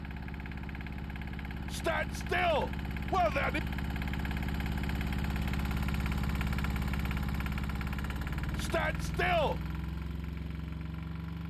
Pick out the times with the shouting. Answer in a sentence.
The shouting can be heard from 1.7 to 3.6 s and from 8.6 to 9.6 s.